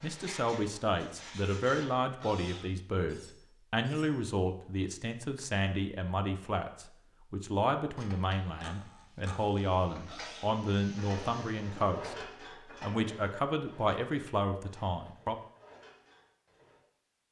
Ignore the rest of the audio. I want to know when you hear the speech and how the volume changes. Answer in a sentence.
You can hear the speech from 0.0 to 15.3 s, at a steady volume.